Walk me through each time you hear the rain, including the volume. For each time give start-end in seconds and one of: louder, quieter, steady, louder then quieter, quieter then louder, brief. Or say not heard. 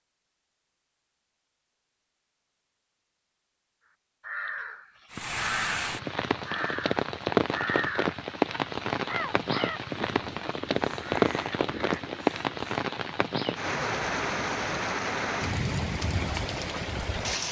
5.1-17.4 steady.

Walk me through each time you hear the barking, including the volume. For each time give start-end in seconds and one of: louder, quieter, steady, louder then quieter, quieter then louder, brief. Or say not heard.
not heard.